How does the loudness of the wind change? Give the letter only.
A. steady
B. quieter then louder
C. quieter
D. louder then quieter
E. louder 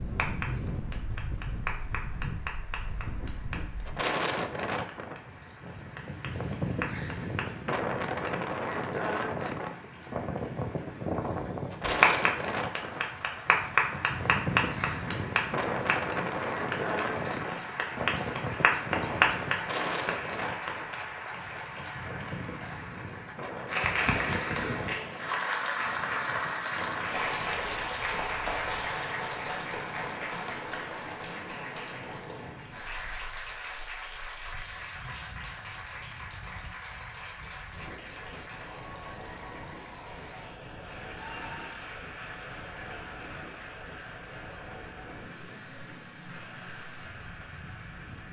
C.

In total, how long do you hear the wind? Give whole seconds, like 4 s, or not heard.
48 s.